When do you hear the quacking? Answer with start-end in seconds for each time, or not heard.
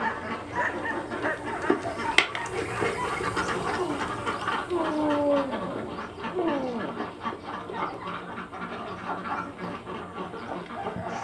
0.0-11.1.